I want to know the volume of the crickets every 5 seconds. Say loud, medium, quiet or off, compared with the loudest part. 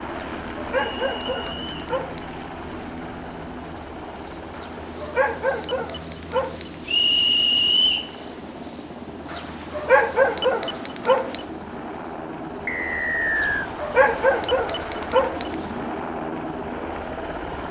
medium, loud, medium, quiet.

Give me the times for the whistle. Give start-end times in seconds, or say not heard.
0.8-1.9, 6.8-8.1, 12.7-13.7.